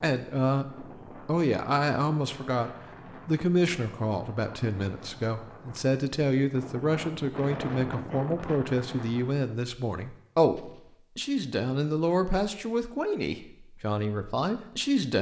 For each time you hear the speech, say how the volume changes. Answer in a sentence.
The speech can be heard from 0.0 to 15.1 s, at a steady volume.